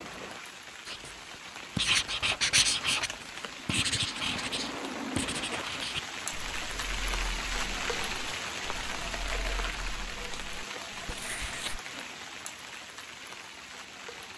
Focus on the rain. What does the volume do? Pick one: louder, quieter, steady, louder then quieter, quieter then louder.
louder then quieter.